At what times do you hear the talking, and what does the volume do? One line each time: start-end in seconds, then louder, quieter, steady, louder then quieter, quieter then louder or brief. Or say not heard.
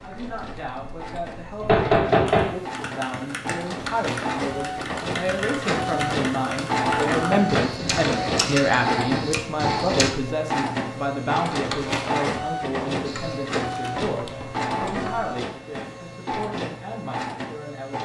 0.0-18.0 louder then quieter.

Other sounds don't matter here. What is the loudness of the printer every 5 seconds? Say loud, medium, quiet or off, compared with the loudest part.
medium, loud, loud, medium.